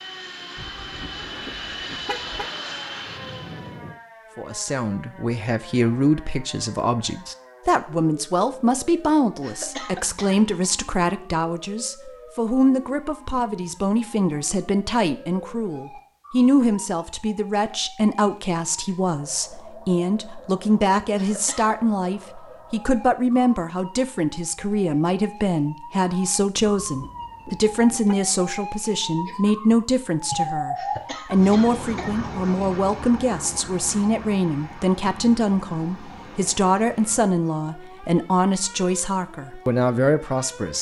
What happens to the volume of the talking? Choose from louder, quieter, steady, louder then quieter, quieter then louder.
steady.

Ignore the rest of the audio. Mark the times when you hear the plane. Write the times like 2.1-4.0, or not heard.
0.0-4.0.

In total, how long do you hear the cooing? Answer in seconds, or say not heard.
not heard.